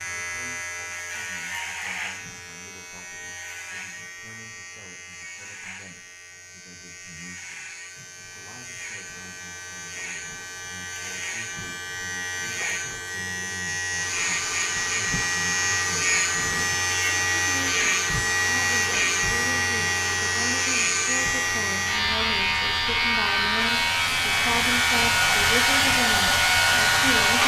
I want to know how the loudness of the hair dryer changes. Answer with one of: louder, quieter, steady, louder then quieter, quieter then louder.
louder.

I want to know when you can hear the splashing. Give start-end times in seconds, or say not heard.
not heard.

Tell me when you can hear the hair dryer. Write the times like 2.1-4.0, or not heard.
13.9-27.4.